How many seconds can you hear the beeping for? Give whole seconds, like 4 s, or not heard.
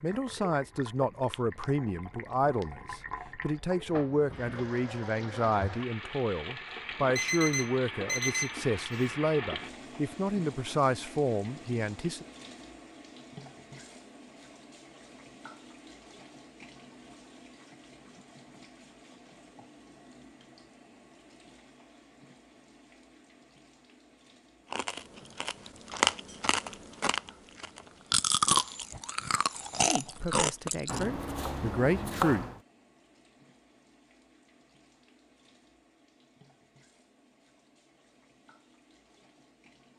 2 s.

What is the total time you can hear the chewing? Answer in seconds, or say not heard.
6 s.